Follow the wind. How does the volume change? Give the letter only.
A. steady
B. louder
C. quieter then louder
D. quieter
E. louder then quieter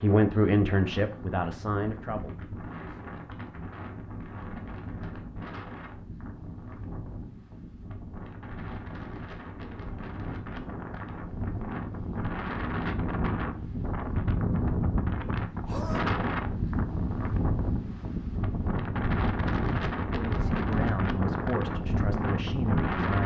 B.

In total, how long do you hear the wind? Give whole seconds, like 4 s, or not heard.
23 s.